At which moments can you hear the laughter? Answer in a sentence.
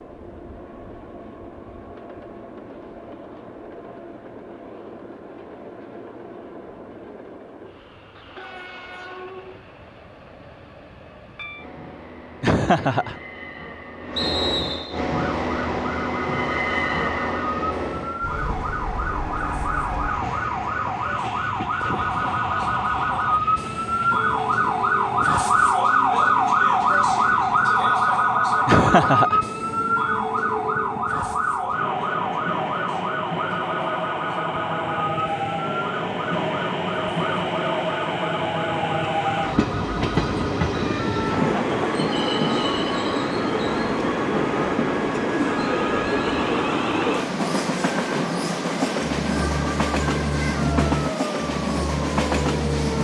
You can hear the laughter from 12.4 to 13.2 s, from 28.6 to 29.4 s and from 41.2 to 42.0 s.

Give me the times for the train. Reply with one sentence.
You can hear the train from 0.0 to 52.9 s.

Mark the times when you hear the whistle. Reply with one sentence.
You can hear the whistle from 14.2 to 15.0 s.